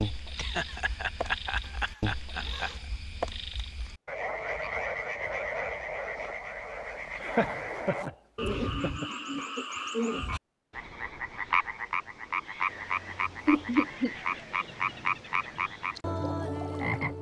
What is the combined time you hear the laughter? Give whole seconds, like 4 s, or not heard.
5 s.